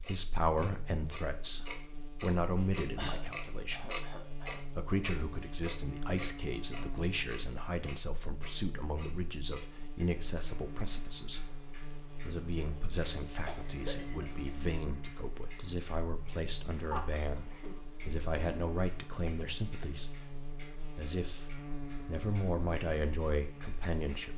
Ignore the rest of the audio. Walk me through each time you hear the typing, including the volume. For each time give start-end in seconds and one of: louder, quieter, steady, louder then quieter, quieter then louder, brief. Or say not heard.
not heard.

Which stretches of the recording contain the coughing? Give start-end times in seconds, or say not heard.
2.5-4.6, 13.4-14.4, 16.9-17.8.